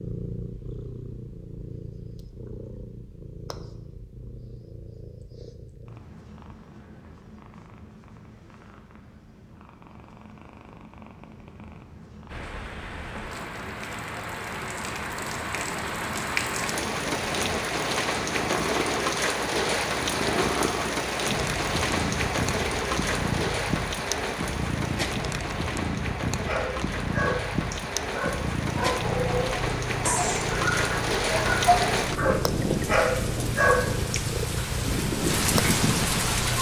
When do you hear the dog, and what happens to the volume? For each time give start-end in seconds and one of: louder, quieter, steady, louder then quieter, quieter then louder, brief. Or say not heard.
26.4-34.6 louder.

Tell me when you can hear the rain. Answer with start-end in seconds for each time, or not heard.
12.2-36.5.